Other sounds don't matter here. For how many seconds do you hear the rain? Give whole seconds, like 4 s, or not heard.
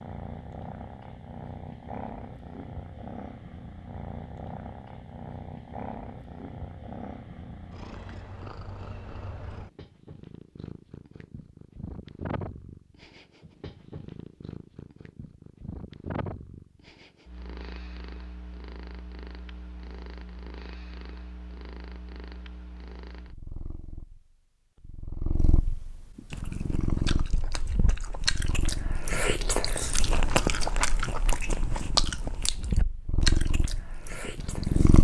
not heard.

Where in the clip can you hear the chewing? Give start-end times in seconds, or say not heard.
26.3-34.9.